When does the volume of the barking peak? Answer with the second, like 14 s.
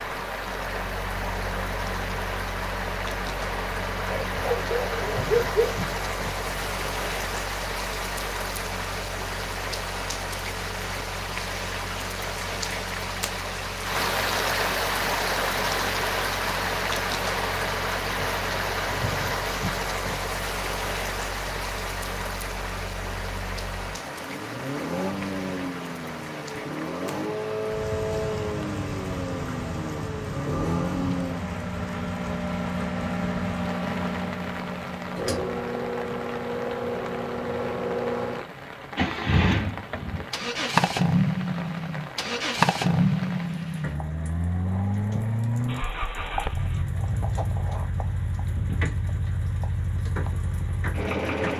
5 s.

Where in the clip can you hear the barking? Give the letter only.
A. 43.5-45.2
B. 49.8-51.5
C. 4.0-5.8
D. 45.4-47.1
C.